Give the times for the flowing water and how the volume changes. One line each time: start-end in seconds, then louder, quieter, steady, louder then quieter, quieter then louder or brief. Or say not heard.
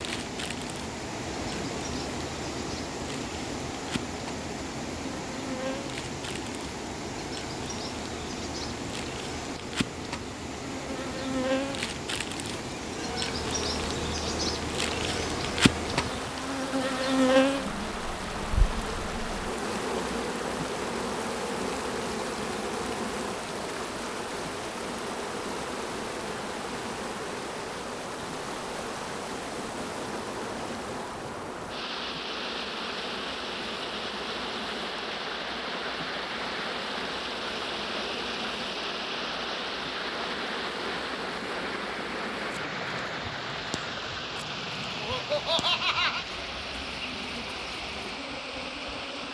0.0-49.2 steady.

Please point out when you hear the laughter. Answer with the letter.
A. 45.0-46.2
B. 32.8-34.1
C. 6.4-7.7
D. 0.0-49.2
A.